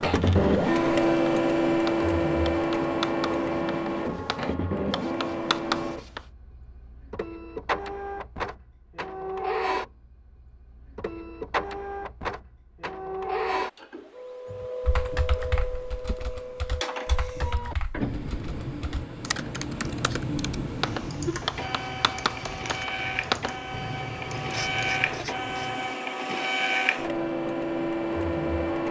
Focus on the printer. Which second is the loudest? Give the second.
1 s.